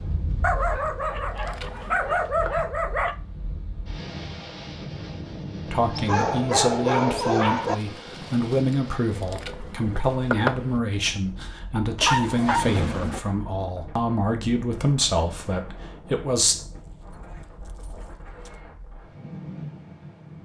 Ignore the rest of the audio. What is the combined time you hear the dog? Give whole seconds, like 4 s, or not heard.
8 s.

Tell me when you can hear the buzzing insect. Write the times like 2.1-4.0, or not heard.
0.0-2.5, 7.7-10.8.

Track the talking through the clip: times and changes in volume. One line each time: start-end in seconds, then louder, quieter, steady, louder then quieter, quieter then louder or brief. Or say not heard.
5.7-16.6 steady.